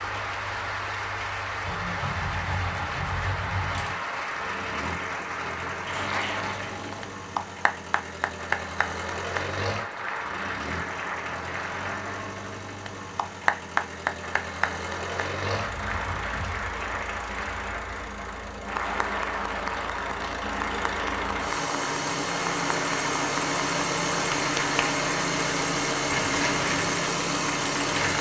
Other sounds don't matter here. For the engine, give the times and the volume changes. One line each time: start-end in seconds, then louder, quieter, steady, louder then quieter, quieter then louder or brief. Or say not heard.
0.0-28.1 louder.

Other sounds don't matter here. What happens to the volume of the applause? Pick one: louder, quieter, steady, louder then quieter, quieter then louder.
steady.